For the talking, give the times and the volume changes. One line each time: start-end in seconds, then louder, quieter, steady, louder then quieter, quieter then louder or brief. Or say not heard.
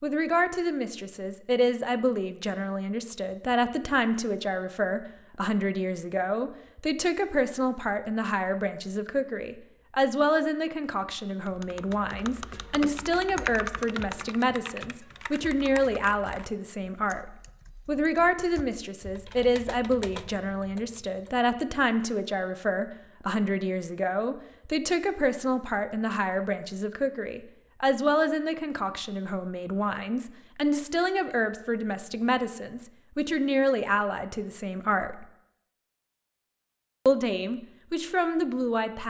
0.0-35.2 steady
37.0-39.0 brief.